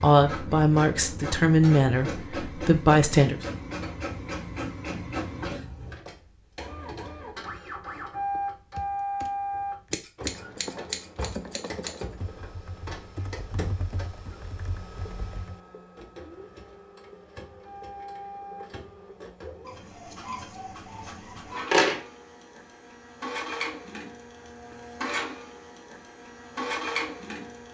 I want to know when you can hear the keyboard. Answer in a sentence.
You can hear the keyboard from 8.3 to 15.6 s.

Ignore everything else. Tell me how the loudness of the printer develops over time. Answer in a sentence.
The loudness of the printer goes down, then up.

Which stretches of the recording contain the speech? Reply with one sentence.
You can hear the speech from 0.0 to 3.4 s.